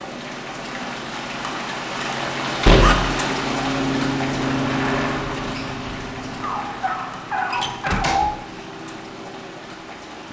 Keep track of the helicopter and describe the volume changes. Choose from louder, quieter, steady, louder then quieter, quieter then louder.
louder then quieter.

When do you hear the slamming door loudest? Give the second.
3 s.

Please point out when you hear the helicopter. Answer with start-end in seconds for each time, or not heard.
0.0-10.2.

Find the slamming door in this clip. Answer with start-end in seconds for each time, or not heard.
2.6-3.1, 7.5-8.3.